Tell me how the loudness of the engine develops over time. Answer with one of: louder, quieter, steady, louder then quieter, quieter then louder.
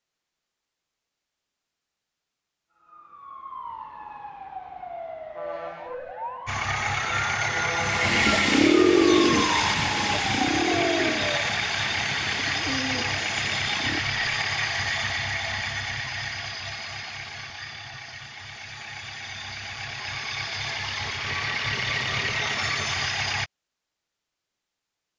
quieter then louder.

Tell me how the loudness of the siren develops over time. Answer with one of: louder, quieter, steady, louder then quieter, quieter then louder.
louder.